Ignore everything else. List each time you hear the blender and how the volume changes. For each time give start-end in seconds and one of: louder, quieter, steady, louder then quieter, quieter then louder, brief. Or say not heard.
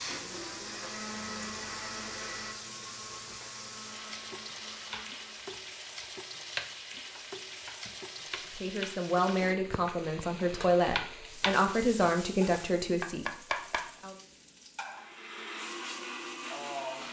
0.0-5.5 quieter
14.9-17.0 brief.